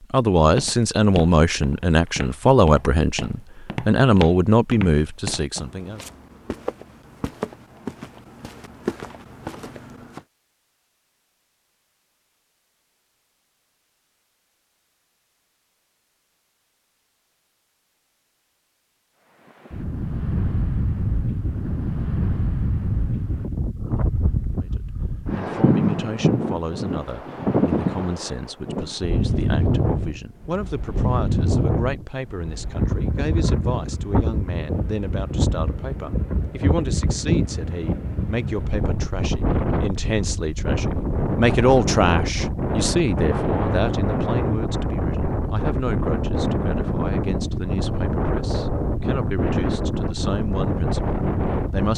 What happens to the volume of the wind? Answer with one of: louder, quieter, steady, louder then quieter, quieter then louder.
steady.